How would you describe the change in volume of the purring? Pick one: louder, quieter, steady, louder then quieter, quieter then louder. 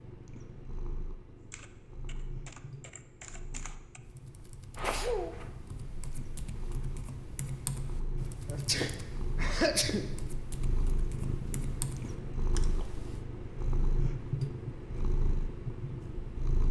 louder.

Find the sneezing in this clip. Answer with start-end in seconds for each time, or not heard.
4.8-5.5, 8.4-10.1.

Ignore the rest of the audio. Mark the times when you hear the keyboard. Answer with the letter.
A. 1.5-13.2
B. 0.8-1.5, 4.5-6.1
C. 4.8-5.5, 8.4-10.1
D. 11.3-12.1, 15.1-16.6
A.